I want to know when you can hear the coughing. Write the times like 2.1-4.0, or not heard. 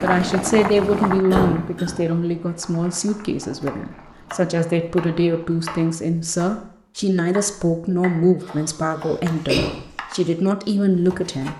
1.3-1.9, 8.4-9.8.